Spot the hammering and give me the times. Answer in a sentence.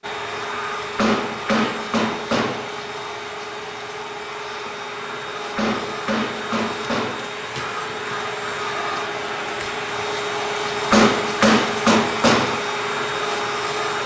The hammering can be heard from 0.9 to 2.6 s, from 5.5 to 7.2 s and from 10.9 to 12.6 s.